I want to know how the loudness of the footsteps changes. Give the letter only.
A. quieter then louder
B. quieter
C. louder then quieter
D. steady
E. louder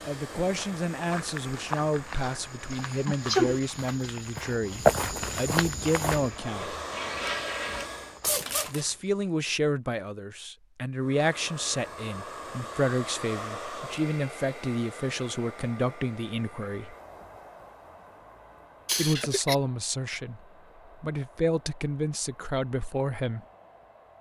C.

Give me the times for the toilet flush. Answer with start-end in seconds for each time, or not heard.
6.1-7.9.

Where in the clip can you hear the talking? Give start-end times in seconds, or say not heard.
0.1-6.8, 8.7-16.9, 18.9-20.4, 21.0-23.4.